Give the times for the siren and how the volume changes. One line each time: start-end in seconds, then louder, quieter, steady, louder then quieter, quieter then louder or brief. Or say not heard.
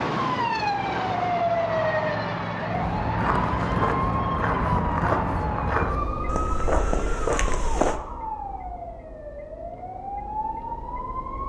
0.0-11.4 quieter.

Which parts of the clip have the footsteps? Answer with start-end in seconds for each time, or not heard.
2.7-8.0.